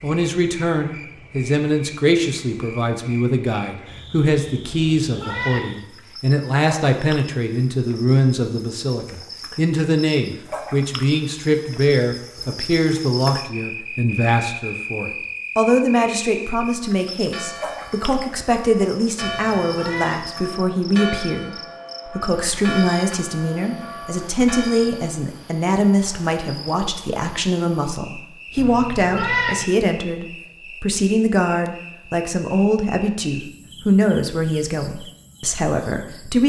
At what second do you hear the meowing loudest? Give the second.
29 s.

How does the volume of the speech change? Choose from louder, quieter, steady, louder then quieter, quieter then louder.
steady.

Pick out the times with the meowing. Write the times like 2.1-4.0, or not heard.
4.6-5.7, 19.2-20.2, 28.6-29.6.